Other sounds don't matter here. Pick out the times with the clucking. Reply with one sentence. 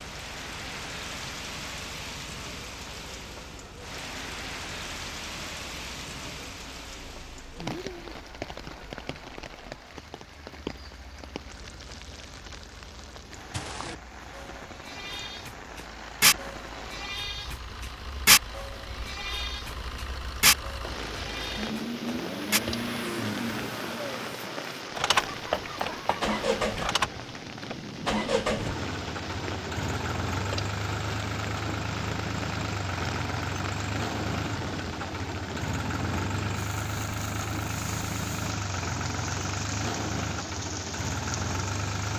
You can hear the clucking from 25.1 to 26.9 s.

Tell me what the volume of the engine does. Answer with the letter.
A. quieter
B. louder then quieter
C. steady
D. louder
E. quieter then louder
D.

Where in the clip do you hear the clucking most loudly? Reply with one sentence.
The loudest moment of the clucking is at 26 seconds.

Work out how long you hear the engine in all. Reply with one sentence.
The engine can be heard for 42 seconds in total.